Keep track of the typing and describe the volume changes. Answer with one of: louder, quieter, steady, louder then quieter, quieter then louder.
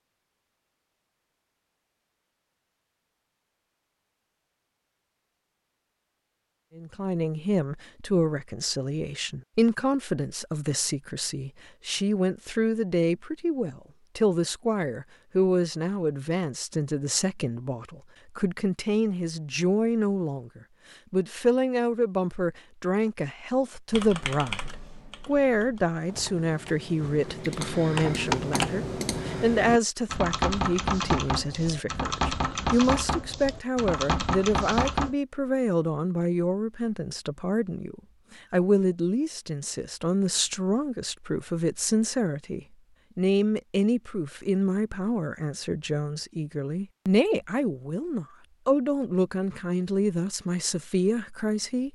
louder.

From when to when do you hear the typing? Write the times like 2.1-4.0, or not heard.
23.9-35.1.